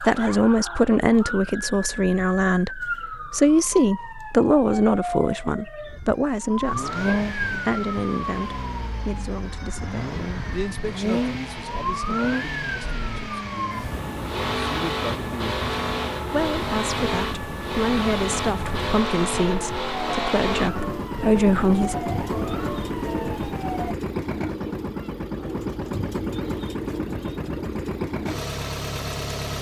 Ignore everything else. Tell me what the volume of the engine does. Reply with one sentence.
The volume of the engine stays about the same.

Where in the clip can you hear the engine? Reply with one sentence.
You can hear the engine from 6.6 to 29.5 s.